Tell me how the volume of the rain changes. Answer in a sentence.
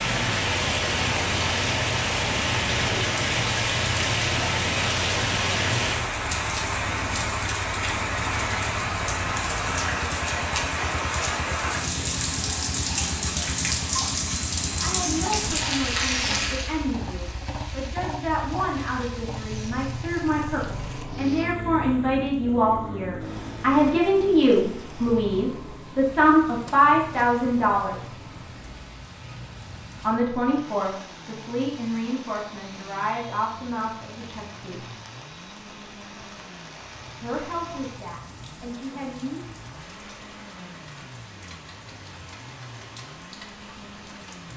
The loudness of the rain goes down.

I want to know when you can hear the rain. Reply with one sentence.
The rain can be heard from 0.0 to 44.5 s.